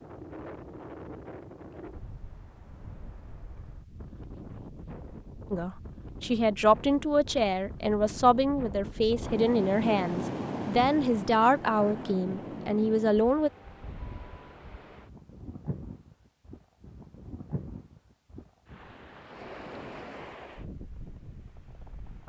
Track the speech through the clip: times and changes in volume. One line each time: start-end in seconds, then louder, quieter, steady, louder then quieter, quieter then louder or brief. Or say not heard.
5.5-13.5 steady.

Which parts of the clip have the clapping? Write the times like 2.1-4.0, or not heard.
not heard.